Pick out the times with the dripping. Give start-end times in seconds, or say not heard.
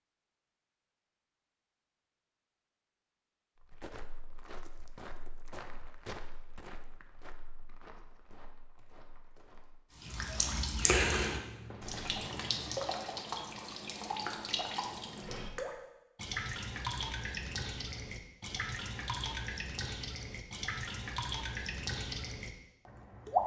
9.9-23.4.